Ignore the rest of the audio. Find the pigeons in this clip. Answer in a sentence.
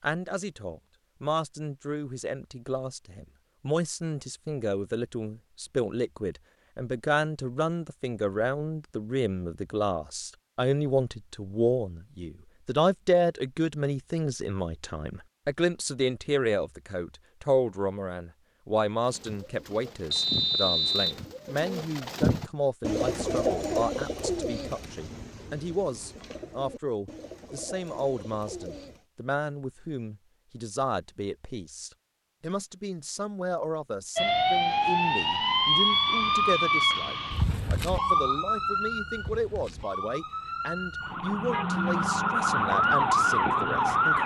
The pigeons can be heard from 19.0 to 29.1 s.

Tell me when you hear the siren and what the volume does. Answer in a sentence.
The siren can be heard from 34.1 to 44.2 s, getting quieter then louder.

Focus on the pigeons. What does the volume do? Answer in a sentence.
The loudness of the pigeons goes up, then down.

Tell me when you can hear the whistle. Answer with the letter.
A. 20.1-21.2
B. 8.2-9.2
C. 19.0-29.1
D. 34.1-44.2
A.